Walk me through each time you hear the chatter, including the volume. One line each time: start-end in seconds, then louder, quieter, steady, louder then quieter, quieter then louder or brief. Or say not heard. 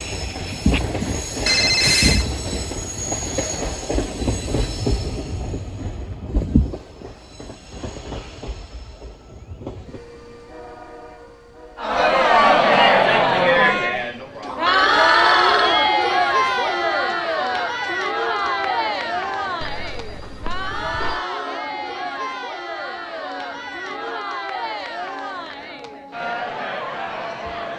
11.8-27.7 quieter.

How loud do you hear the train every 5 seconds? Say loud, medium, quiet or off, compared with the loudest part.
loud, medium, quiet, quiet, quiet, quiet.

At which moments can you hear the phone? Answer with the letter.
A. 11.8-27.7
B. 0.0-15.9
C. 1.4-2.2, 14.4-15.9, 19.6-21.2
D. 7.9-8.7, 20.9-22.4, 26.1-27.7
C.